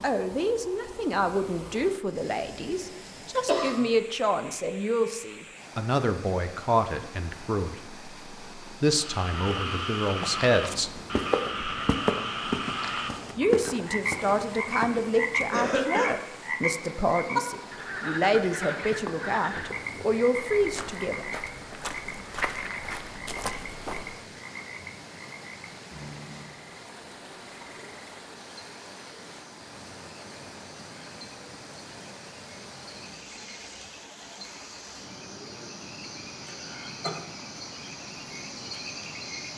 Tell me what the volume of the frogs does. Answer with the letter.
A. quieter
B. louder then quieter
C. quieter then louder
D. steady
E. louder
C.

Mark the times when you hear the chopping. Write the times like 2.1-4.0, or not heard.
not heard.